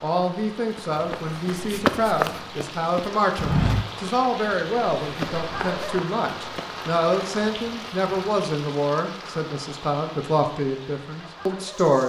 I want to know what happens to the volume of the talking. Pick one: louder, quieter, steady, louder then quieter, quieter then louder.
steady.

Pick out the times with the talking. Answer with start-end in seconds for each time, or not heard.
0.0-12.0.